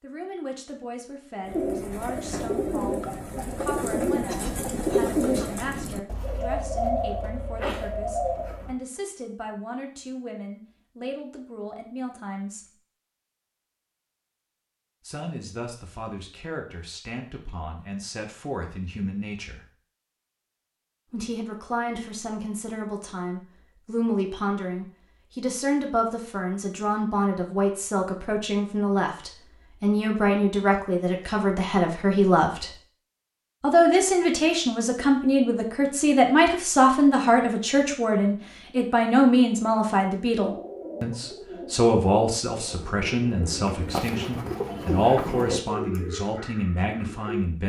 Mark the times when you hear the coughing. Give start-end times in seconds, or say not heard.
4.2-5.6.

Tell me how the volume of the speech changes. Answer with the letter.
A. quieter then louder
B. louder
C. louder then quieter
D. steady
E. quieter
B.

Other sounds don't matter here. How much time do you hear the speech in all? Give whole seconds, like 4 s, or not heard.
43 s.